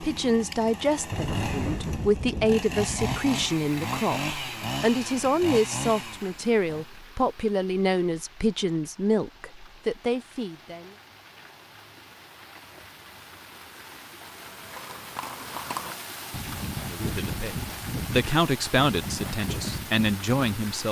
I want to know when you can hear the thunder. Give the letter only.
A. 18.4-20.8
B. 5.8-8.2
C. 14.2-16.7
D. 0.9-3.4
D.